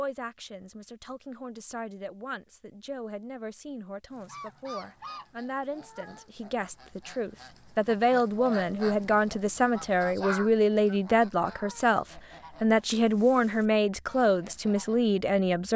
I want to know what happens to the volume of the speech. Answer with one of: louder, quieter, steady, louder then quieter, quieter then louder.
louder.